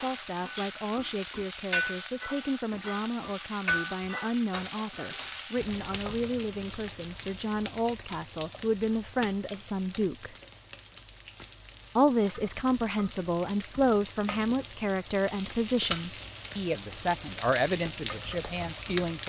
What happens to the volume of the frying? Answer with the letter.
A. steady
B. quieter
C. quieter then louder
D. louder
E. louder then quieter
C.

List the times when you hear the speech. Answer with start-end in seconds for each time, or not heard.
0.0-10.3, 11.9-19.2.